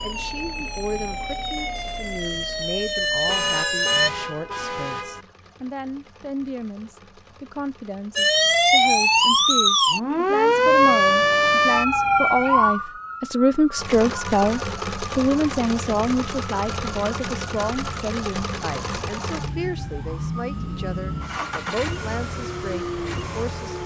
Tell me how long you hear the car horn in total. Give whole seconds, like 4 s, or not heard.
2 s.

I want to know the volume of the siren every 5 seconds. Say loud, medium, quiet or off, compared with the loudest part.
medium, loud, loud, quiet, quiet.